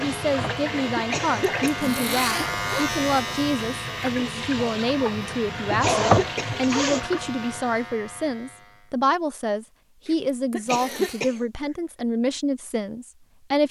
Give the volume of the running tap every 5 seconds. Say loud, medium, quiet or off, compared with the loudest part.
medium, loud, off.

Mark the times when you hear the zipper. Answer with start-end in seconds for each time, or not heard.
1.6-2.9, 5.8-7.2, 10.5-11.3.